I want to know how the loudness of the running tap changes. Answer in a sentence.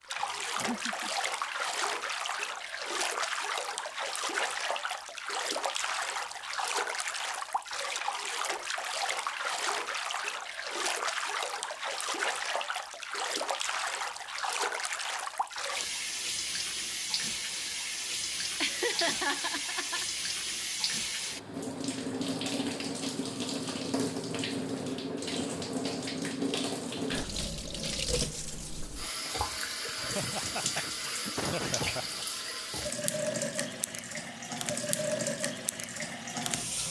The volume of the running tap stays about the same.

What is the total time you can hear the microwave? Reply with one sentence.
You can't hear the microwave here.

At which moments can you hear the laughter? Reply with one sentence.
You can hear the laughter from 0.2 to 1.1 s, from 18.6 to 20.1 s and from 29.9 to 32.2 s.